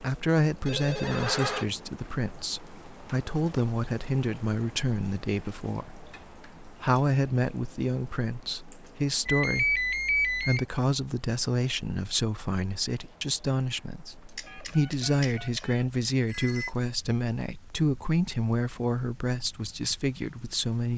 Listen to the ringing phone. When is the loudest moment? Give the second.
10 s.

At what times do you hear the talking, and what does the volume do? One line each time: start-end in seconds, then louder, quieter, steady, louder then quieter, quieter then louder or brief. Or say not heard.
0.0-20.9 steady.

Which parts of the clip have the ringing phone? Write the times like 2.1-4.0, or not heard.
0.7-1.6, 9.2-10.7, 14.3-16.7.